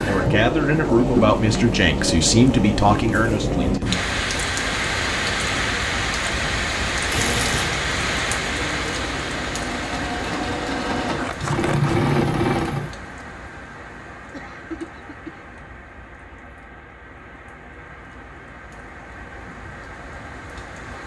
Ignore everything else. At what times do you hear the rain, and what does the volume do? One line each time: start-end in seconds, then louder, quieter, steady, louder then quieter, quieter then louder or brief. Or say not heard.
0.0-21.0 quieter.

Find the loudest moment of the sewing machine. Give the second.
12 s.